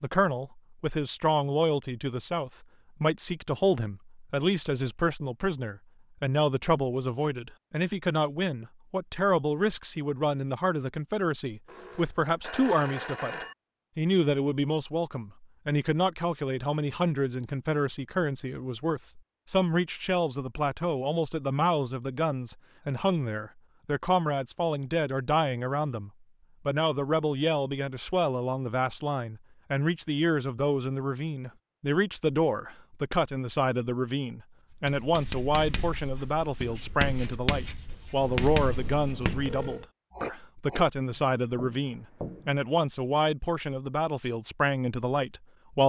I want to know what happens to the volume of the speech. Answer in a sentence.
The loudness of the speech stays about the same.